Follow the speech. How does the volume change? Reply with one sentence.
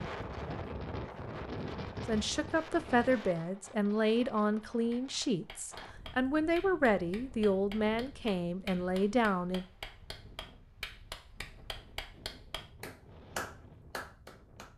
The volume of the speech stays about the same.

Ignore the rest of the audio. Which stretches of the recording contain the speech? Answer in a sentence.
The speech can be heard from 2.0 to 9.7 s.